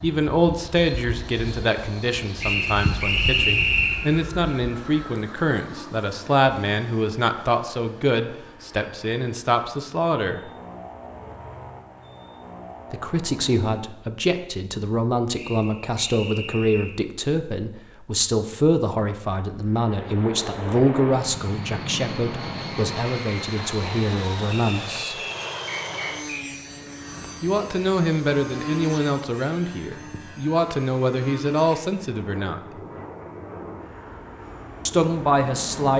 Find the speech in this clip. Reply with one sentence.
The speech can be heard from 0.0 to 10.4 s, from 12.9 to 25.1 s, from 27.4 to 32.6 s and from 34.9 to 35.9 s.